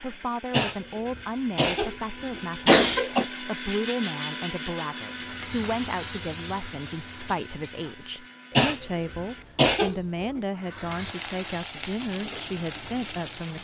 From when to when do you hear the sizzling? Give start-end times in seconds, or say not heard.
5.0-8.3, 10.6-13.5.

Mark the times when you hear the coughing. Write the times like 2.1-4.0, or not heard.
0.5-3.2, 8.6-10.4.